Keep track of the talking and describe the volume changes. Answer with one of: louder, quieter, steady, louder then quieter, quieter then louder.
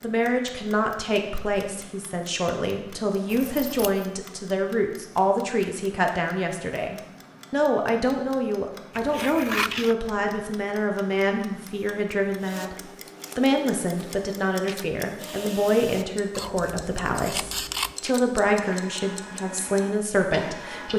steady.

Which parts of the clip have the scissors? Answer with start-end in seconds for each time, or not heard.
3.3-4.1, 8.9-9.9, 16.4-17.9.